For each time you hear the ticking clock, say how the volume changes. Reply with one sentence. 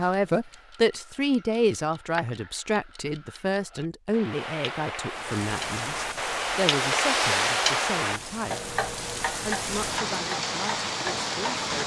The ticking clock can be heard from 0.0 to 11.7 s, getting louder then quieter.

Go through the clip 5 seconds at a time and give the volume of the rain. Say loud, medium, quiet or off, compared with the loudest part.
off, medium, loud.